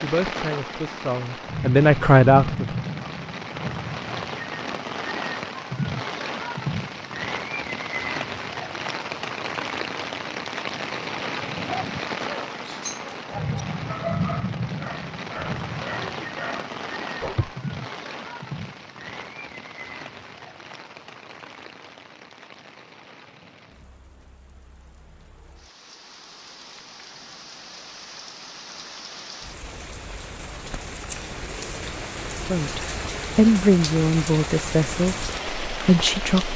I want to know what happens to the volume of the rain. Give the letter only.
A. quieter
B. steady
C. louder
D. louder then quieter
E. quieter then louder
E.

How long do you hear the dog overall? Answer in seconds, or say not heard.
6 s.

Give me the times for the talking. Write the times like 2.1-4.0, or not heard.
0.0-2.8, 32.5-36.5.